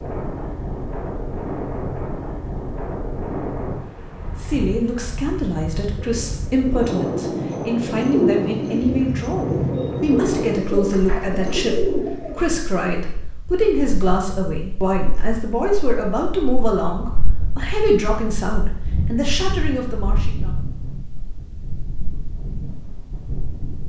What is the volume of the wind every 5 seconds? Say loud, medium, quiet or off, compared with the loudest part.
loud, loud, medium, medium, medium.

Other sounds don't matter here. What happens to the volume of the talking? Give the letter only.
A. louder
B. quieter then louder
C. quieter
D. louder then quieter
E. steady
E.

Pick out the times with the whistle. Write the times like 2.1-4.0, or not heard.
not heard.